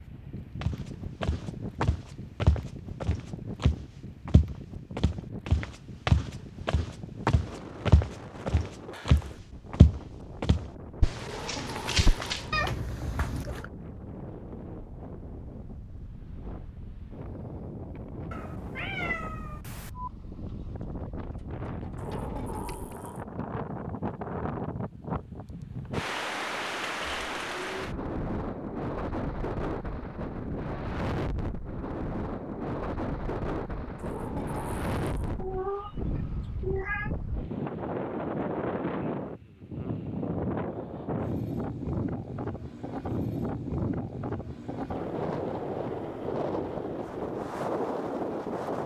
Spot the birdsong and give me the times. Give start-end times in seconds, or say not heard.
not heard.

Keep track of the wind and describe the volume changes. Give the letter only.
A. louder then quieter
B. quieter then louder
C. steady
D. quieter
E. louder
E.